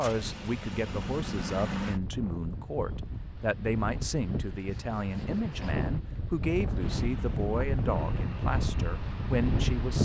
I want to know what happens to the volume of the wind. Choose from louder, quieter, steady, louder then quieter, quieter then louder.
louder.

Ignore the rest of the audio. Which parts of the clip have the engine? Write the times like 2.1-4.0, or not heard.
0.0-2.0, 6.8-10.0.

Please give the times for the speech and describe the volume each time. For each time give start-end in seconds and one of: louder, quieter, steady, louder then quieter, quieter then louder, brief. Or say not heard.
0.0-10.0 steady.